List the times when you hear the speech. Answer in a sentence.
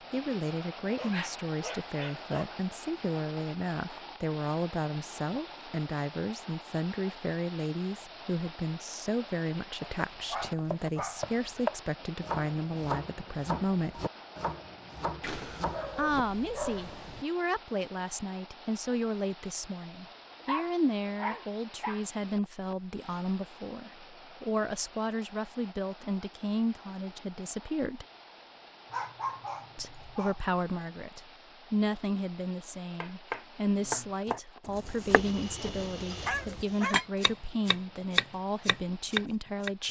The speech can be heard from 0.1 to 14.1 s, from 15.9 to 28.1 s and from 29.8 to 39.8 s.